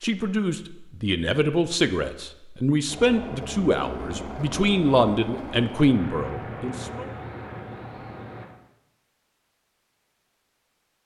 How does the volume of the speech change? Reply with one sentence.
The loudness of the speech stays about the same.